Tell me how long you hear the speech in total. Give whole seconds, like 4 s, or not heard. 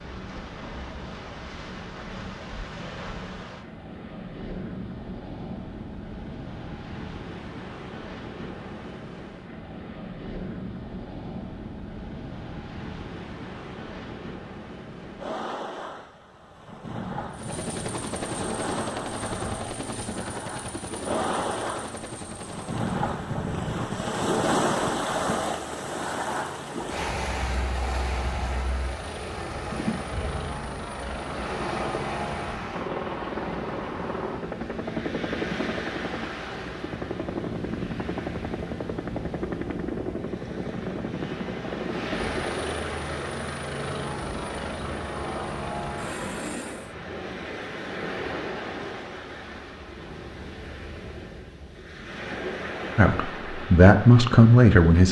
2 s.